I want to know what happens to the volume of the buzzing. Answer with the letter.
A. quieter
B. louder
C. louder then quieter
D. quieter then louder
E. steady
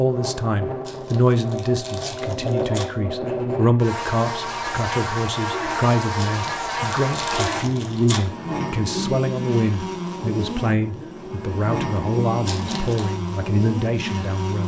E.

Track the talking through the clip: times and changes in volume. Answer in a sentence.
You can hear the talking from 0.0 to 14.6 s, at a steady volume.